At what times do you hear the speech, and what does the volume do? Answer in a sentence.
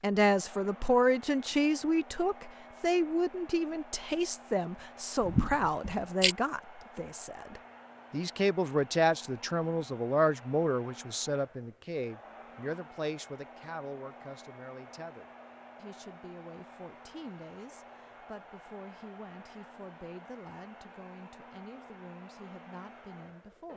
The speech can be heard from 0.0 to 23.7 s, getting quieter.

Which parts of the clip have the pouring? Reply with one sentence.
You can hear the pouring from 5.2 to 6.3 s.